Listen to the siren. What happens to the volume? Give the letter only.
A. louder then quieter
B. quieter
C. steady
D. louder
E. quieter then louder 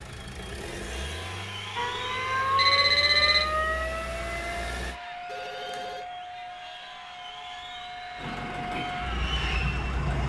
E.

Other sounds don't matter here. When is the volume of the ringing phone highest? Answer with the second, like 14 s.
3 s.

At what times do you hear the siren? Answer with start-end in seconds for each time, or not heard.
1.8-10.2.